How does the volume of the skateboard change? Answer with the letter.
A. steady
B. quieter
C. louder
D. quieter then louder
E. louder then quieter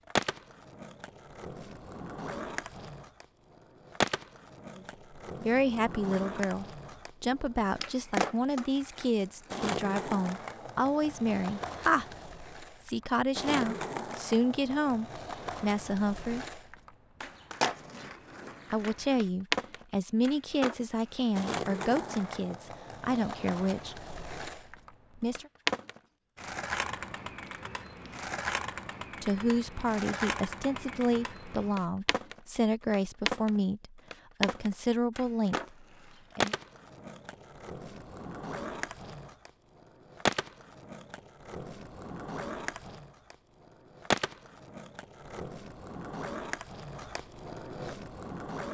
A.